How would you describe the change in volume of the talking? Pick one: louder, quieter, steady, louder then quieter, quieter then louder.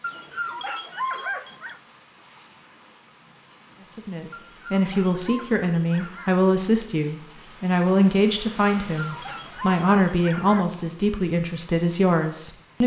steady.